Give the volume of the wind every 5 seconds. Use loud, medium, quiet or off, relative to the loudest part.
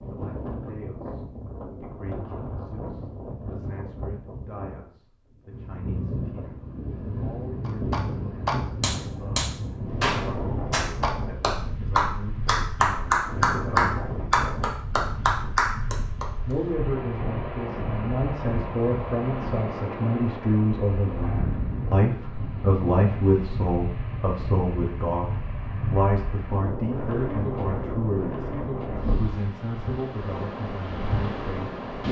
medium, loud, loud, loud, loud, loud, loud.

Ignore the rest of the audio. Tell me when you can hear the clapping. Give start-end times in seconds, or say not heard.
7.7-16.2.